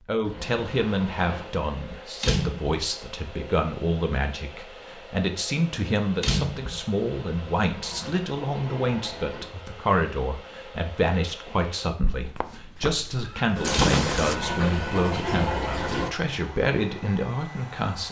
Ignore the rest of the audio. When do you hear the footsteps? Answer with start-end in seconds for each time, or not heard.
12.2-14.3.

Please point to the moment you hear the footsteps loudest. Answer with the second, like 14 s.
14 s.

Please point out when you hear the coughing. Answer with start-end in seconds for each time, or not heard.
not heard.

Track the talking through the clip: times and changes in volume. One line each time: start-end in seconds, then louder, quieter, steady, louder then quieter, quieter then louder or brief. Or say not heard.
0.1-18.0 steady.